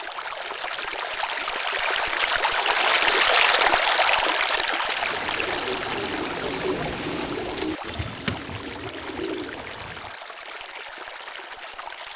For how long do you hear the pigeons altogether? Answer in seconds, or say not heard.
5 s.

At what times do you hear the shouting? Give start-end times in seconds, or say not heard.
not heard.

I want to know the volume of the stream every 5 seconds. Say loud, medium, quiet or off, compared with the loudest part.
loud, medium, quiet.